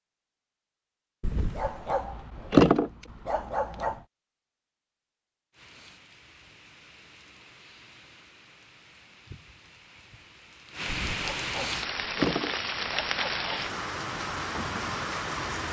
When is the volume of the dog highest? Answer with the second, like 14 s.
3 s.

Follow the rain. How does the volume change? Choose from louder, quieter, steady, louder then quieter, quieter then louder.
louder.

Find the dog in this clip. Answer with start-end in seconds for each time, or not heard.
1.2-4.0, 11.1-13.7.